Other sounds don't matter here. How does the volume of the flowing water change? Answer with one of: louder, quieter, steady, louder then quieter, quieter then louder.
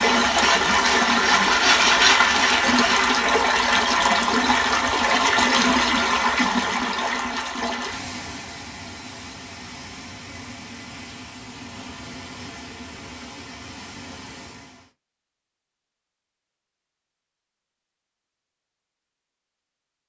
quieter.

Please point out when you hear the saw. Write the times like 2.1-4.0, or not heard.
0.2-3.1.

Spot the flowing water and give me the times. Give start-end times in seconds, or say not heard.
0.0-14.9.